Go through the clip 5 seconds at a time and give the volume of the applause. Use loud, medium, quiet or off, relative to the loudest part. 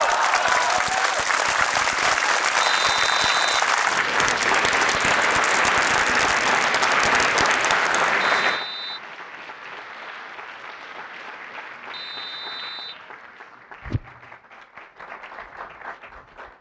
loud, loud, quiet, quiet.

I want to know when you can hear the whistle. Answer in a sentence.
You can hear the whistle from 2.6 to 3.7 s, from 8.2 to 9.0 s and from 11.9 to 13.1 s.